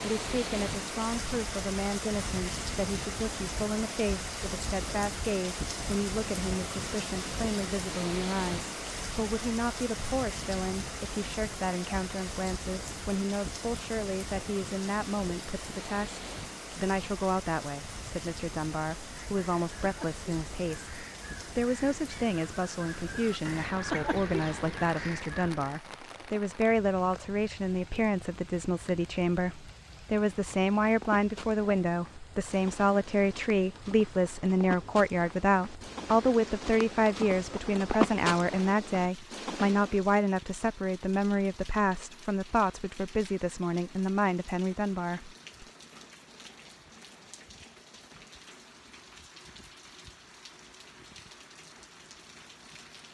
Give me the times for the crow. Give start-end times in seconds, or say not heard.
19.1-25.8.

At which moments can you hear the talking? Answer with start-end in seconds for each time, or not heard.
0.0-45.6.